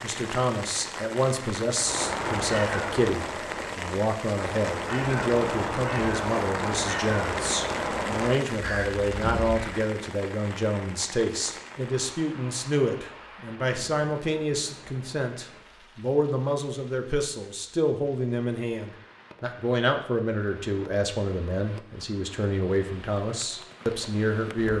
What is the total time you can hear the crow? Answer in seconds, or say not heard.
8 s.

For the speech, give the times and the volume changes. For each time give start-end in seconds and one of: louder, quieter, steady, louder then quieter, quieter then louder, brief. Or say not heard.
0.0-24.7 steady.